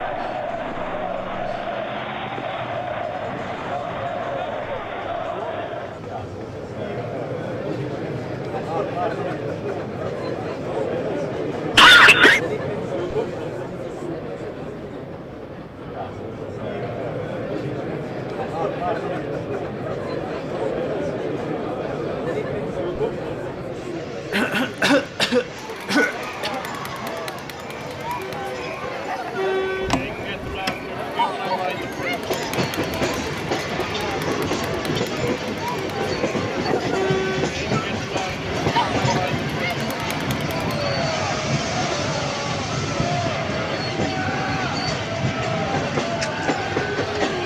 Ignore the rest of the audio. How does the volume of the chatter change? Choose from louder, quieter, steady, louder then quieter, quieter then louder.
steady.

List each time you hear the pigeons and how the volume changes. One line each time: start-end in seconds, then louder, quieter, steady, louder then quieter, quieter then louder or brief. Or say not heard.
not heard.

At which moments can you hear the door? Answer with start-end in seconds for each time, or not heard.
29.8-30.9.